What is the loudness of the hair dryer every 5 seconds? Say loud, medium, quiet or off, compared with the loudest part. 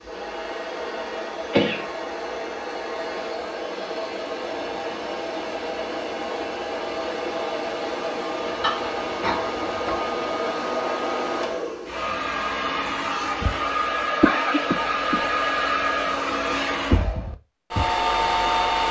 medium, medium, loud, loud.